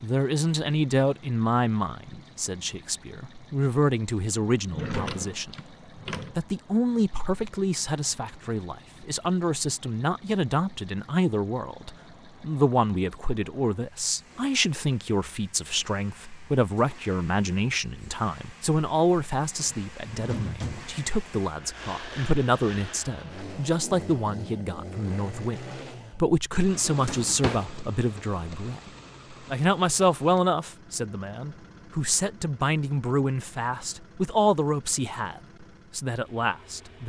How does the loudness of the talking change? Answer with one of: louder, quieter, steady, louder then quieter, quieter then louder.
steady.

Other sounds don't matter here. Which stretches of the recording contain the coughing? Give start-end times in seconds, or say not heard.
not heard.